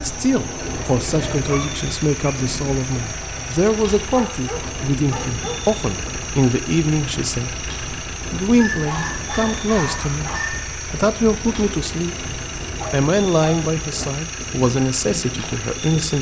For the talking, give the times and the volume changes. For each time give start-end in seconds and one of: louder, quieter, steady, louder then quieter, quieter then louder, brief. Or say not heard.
0.0-16.1 steady.